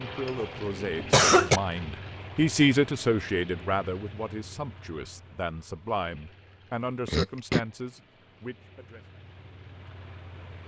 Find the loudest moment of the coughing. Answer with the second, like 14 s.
1 s.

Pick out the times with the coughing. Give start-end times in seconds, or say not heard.
0.2-1.6, 7.0-7.6.